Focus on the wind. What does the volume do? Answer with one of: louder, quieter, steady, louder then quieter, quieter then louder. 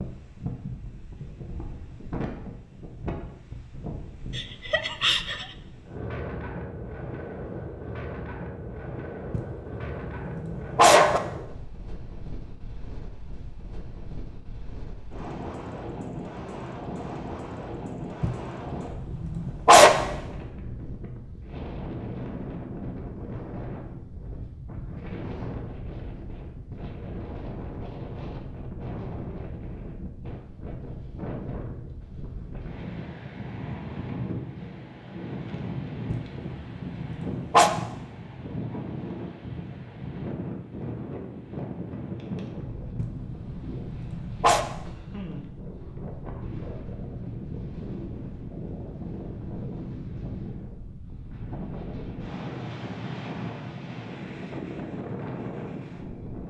steady.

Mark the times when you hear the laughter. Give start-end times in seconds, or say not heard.
4.3-5.5.